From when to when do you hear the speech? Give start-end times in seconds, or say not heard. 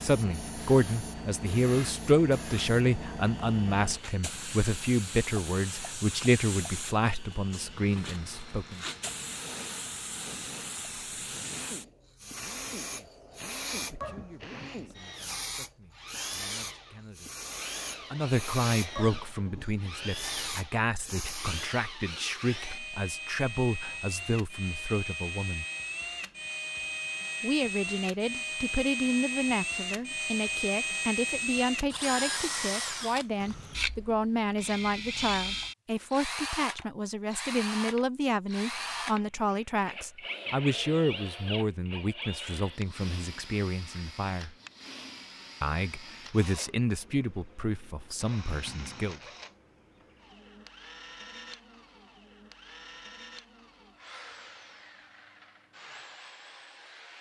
0.0-8.8, 12.2-17.4, 18.0-25.6, 27.4-44.5, 45.6-49.2.